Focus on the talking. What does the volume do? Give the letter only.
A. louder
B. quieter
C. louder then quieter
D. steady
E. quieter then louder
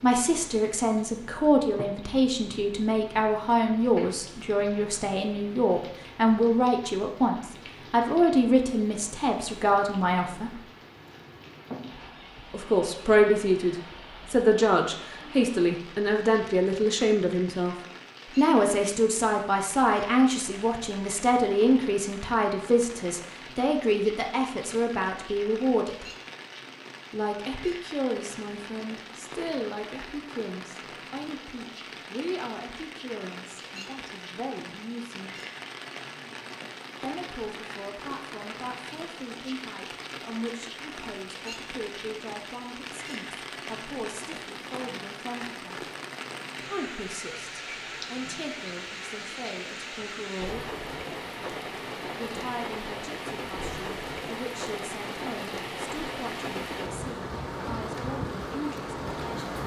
B.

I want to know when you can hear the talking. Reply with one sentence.
You can hear the talking from 0.0 to 10.6 s, from 12.5 to 26.1 s, from 27.1 to 35.4 s, from 37.0 to 45.9 s, from 46.6 to 50.8 s and from 52.1 to 59.5 s.